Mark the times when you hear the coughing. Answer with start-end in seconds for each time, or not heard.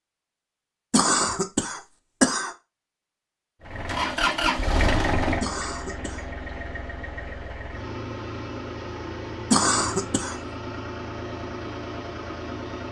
0.9-2.5, 5.4-6.2, 9.5-10.3.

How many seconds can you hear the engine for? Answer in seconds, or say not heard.
9 s.